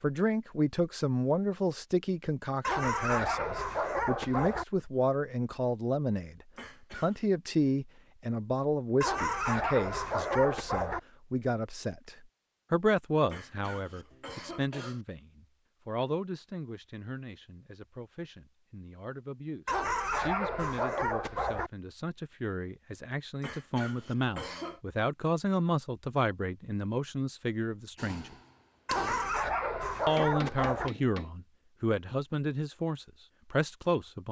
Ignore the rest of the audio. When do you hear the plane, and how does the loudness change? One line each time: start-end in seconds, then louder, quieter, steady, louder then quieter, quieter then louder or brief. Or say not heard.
not heard.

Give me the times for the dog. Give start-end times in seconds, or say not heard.
2.6-4.7, 9.0-11.0, 19.6-21.7, 28.9-30.9.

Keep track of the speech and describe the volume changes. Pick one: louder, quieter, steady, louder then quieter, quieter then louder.
quieter then louder.